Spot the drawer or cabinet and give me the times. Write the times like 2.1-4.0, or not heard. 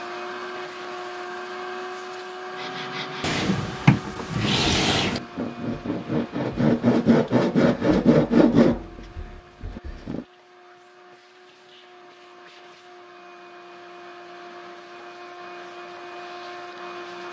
3.2-5.2.